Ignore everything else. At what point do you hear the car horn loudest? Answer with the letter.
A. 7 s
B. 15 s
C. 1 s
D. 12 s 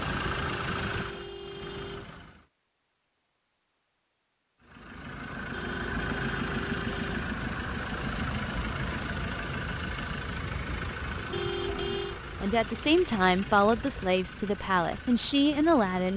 D.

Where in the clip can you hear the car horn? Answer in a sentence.
The car horn can be heard from 0.2 to 2.1 s, from 5.5 to 7.2 s and from 11.3 to 12.2 s.